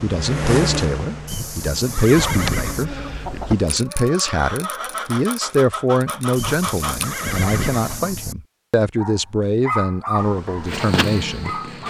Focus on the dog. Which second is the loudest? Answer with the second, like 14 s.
10 s.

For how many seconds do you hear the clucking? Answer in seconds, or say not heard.
6 s.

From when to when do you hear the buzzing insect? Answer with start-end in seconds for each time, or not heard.
0.0-3.8, 10.2-11.8.